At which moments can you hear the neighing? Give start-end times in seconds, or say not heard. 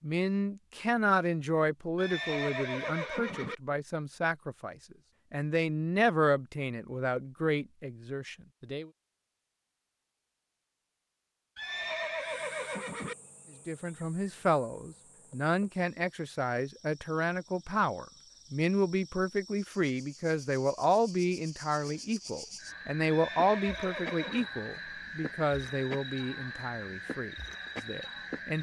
1.9-3.5, 11.6-13.2, 23.1-24.5.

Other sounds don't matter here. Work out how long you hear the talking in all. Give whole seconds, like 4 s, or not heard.
24 s.